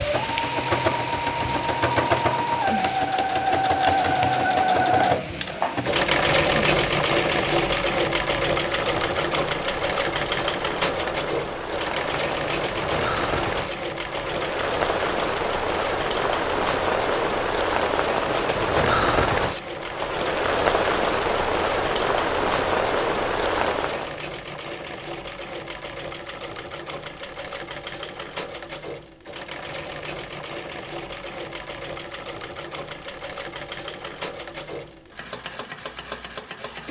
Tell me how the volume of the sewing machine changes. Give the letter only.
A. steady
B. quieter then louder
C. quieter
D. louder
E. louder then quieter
C.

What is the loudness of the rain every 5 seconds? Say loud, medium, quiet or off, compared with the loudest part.
medium, medium, medium, loud, loud, off, off, off.